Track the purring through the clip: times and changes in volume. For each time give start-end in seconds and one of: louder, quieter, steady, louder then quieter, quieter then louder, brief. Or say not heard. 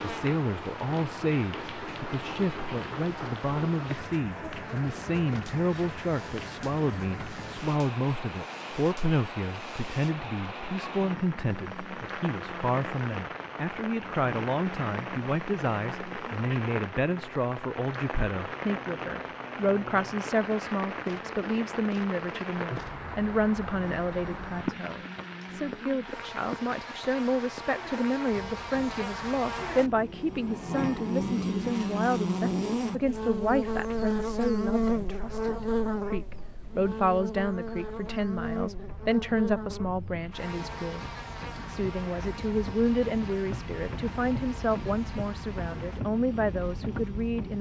not heard.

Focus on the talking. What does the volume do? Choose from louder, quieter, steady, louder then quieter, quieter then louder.
steady.